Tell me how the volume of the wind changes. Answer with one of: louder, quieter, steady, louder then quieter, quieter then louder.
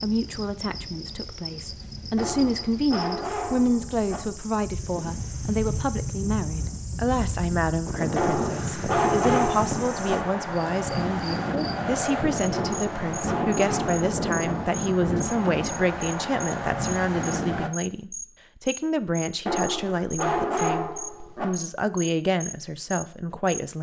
louder.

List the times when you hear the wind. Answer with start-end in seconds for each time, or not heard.
0.0-17.7.